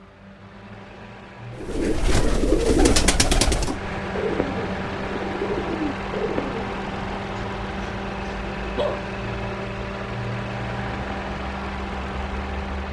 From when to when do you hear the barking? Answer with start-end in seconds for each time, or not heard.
7.3-9.1.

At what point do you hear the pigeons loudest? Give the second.
3 s.